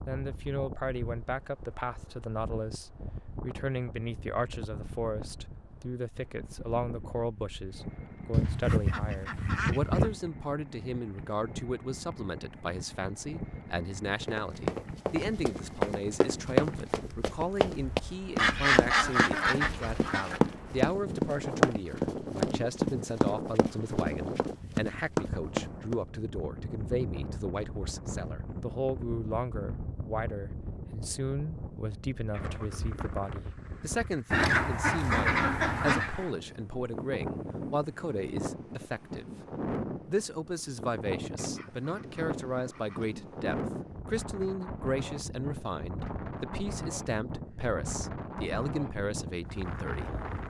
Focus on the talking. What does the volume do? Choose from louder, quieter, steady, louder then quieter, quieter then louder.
steady.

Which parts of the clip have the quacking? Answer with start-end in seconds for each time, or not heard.
8.3-10.2, 18.4-20.4, 34.3-36.1, 41.4-43.1.